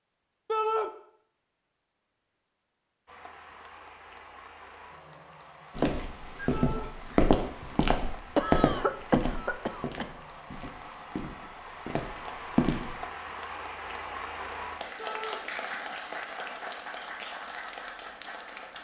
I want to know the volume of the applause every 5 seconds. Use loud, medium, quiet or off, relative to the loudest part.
medium, medium, loud, loud.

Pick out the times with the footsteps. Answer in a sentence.
The footsteps can be heard from 5.8 to 12.9 s.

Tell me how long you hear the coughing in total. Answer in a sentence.
The coughing can be heard for 2 seconds in total.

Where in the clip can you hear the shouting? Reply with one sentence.
The shouting can be heard from 0.5 to 0.9 s, from 6.5 to 6.9 s and from 14.9 to 15.4 s.